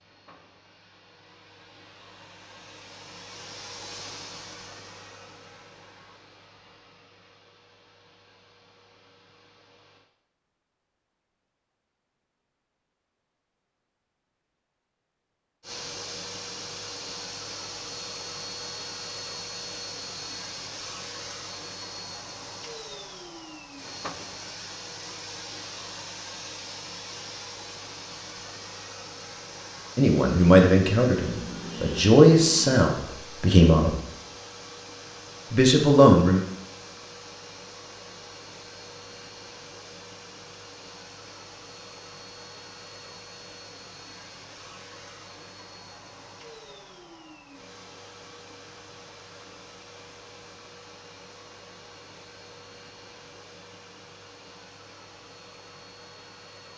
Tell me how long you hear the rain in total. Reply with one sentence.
You can't hear the rain here.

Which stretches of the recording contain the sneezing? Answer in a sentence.
You can't hear the sneezing here.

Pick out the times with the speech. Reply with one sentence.
You can hear the speech from 29.9 to 34.0 s and from 35.5 to 36.4 s.